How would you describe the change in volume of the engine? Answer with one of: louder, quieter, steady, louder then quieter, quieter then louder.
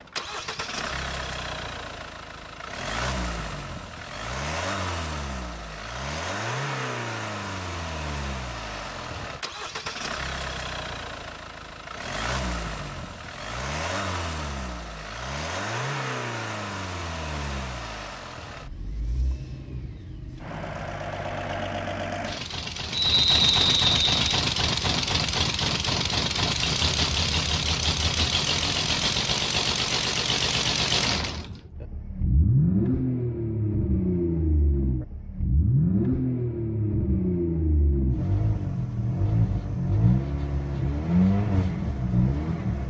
louder.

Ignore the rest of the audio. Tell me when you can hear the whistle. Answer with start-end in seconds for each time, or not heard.
22.9-24.2.